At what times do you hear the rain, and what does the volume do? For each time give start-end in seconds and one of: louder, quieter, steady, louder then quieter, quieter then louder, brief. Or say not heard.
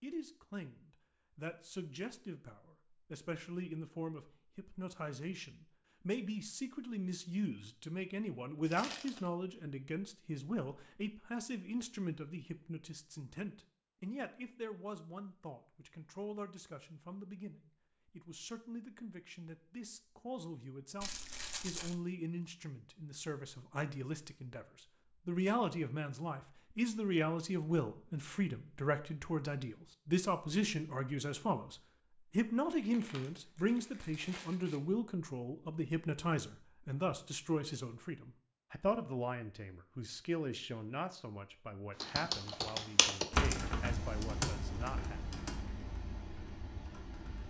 not heard.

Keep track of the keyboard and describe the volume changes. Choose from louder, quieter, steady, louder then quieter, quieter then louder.
quieter.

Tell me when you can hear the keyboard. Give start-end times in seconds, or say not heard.
42.0-47.4.